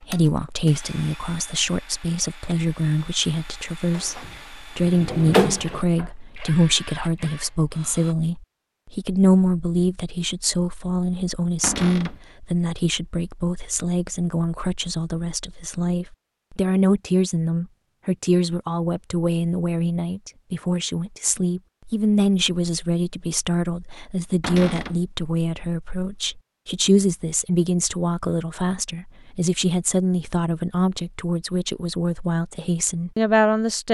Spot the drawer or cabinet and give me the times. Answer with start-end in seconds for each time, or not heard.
4.0-6.1, 11.6-12.2, 24.4-25.0.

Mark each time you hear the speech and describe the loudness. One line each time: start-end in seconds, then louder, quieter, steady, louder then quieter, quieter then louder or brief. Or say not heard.
0.0-33.8 steady.